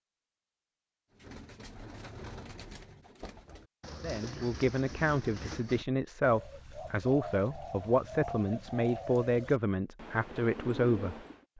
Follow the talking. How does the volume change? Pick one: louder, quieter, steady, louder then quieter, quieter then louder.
steady.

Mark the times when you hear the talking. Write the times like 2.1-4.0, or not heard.
4.0-11.5.